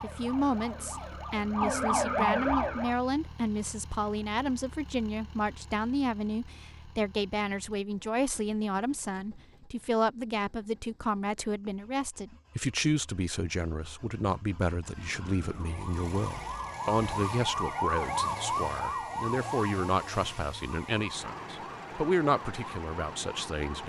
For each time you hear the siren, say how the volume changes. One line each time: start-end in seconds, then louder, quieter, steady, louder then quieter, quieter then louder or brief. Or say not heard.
0.0-3.0 brief
14.9-23.8 louder then quieter.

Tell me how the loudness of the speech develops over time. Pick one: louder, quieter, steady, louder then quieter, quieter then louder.
steady.